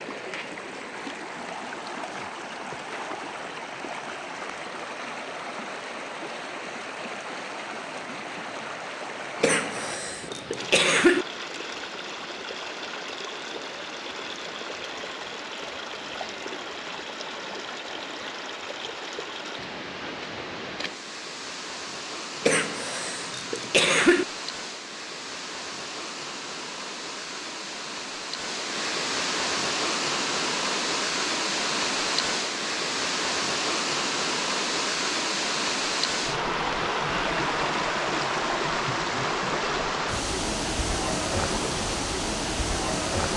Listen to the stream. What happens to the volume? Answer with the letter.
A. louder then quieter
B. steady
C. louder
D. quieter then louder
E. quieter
C.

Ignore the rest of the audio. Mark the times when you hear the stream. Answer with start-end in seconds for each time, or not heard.
0.0-43.3.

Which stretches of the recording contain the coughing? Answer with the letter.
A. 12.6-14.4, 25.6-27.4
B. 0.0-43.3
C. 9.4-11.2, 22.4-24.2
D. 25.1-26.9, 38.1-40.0
C.